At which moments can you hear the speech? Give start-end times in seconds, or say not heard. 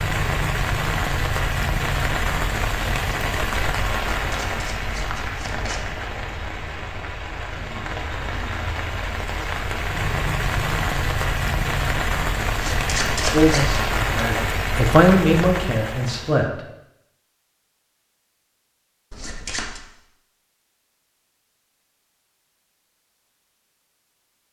13.3-16.6.